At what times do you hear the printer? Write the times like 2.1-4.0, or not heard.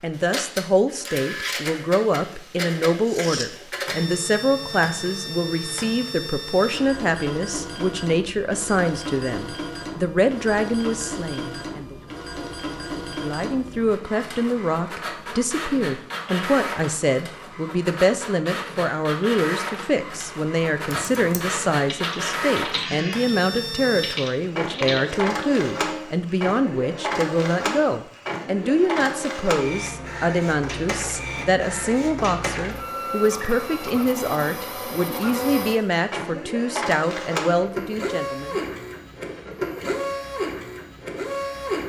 0.0-41.8.